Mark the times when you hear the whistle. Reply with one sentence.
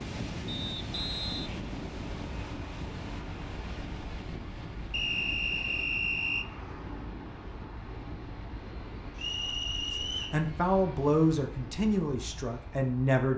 The whistle can be heard from 0.5 to 1.5 s, from 4.9 to 6.5 s and from 9.2 to 10.4 s.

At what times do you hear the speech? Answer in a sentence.
You can hear the speech from 9.9 to 13.3 s.